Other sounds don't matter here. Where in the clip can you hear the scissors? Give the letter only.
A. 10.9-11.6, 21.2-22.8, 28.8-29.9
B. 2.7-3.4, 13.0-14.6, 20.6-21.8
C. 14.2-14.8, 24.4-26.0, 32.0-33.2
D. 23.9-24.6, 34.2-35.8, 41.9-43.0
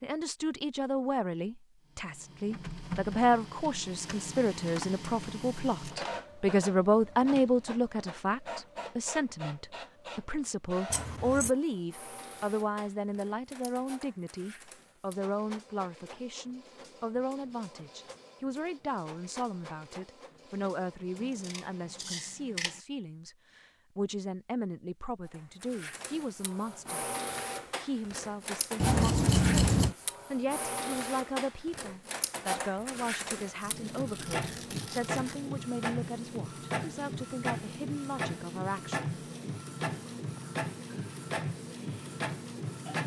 A.